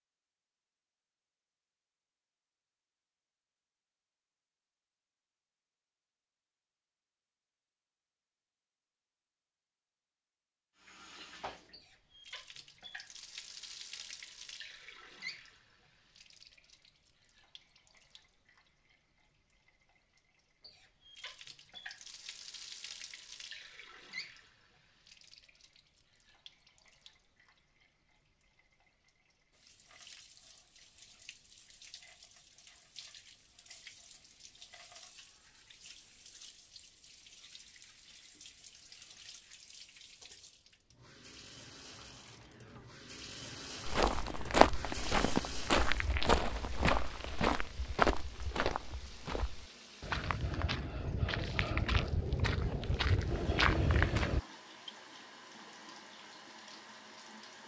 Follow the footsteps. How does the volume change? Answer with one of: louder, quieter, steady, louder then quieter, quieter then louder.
quieter then louder.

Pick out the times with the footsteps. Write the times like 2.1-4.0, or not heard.
43.9-54.4.